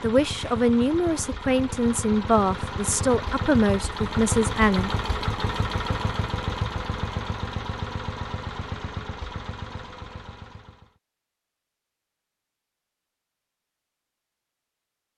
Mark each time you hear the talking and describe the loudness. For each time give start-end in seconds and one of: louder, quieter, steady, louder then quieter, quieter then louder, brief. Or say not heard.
0.0-4.9 steady.